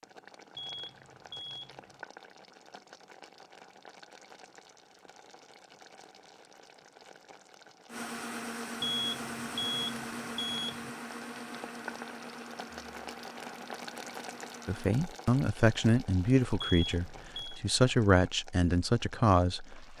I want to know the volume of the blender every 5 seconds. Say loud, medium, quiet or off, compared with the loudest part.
off, loud, medium, off.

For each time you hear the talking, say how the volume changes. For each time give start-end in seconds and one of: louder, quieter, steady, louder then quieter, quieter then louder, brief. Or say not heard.
14.7-19.9 quieter then louder.